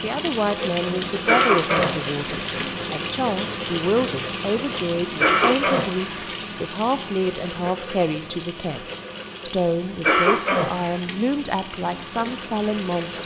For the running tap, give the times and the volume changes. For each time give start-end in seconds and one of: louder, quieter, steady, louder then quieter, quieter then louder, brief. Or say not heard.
0.0-13.2 quieter.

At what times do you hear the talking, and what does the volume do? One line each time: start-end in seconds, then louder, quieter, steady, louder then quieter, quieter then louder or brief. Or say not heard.
0.0-13.2 steady.